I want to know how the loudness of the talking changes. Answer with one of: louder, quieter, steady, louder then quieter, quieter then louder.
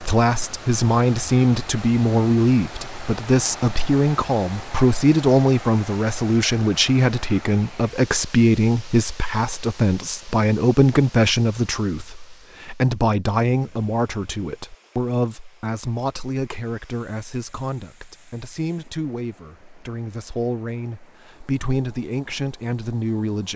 quieter.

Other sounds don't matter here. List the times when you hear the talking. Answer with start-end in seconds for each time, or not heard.
0.0-23.5.